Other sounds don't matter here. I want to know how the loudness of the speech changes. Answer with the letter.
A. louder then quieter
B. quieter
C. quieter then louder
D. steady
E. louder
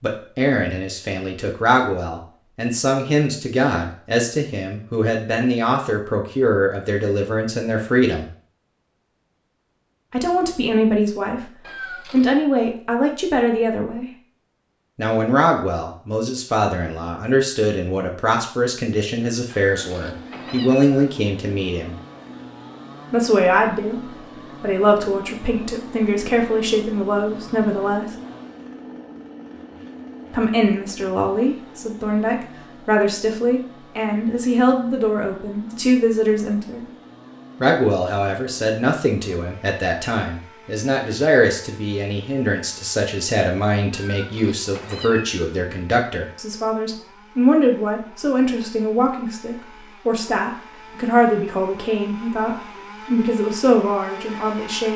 D.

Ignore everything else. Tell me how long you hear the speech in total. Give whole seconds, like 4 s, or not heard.
48 s.